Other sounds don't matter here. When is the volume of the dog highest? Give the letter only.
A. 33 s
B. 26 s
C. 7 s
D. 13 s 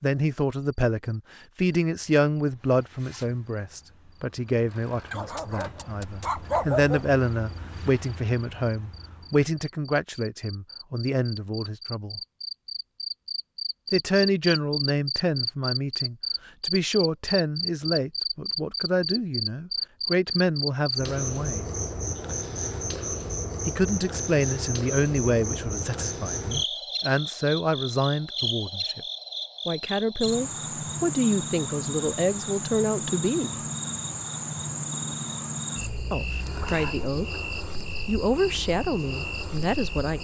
C.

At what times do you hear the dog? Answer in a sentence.
The dog can be heard from 5.1 to 7.1 s.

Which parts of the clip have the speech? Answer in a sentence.
You can hear the speech from 0.0 to 12.2 s, from 13.9 to 21.6 s, from 23.6 to 29.0 s, from 29.6 to 33.6 s and from 36.1 to 40.1 s.